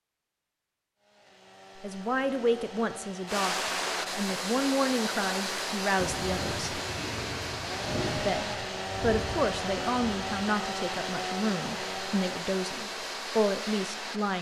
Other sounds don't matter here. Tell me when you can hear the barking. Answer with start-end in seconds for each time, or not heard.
not heard.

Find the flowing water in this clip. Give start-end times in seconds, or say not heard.
3.2-14.3.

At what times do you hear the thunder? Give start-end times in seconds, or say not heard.
6.0-10.4.